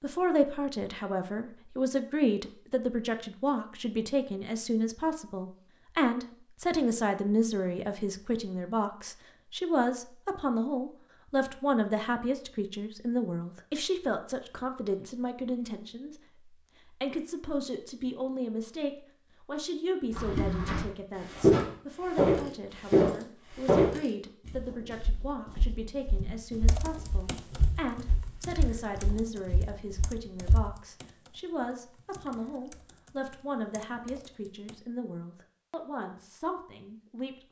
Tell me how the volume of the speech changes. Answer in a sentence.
The loudness of the speech goes down.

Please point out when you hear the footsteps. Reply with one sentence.
You can hear the footsteps from 20.1 to 30.7 s.